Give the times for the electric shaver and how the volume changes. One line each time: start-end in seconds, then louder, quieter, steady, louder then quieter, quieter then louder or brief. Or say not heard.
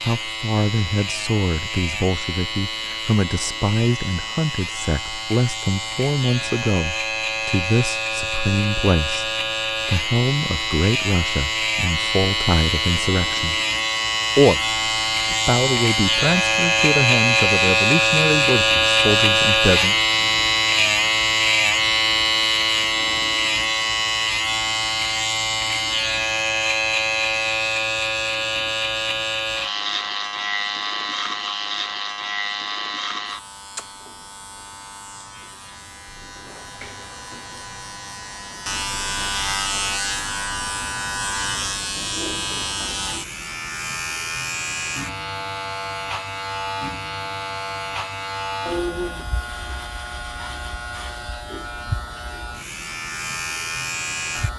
0.0-54.5 louder then quieter.